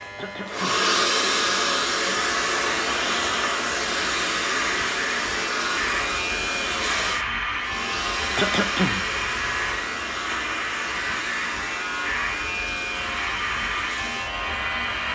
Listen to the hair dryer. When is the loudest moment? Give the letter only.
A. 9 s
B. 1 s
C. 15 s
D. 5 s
B.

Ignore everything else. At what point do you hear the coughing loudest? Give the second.
9 s.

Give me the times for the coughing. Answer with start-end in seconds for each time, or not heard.
0.1-0.8, 8.3-9.0.